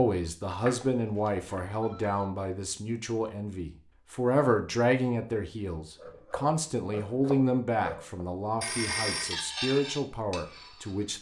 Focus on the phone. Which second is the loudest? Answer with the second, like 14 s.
9 s.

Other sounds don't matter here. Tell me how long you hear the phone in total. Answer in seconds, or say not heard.
2 s.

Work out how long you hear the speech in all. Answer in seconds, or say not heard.
11 s.